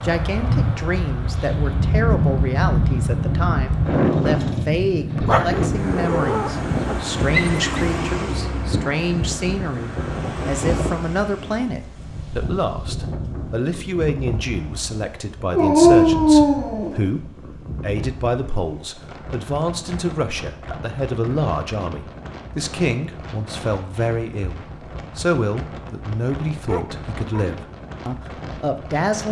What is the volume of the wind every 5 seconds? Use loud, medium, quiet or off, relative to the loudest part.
loud, loud, medium, quiet, quiet, quiet.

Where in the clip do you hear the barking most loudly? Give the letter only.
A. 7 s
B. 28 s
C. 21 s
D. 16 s
D.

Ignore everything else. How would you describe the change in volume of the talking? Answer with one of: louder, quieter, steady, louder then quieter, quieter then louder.
steady.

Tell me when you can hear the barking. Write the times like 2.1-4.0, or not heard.
5.2-7.8, 15.5-17.1, 26.6-27.6.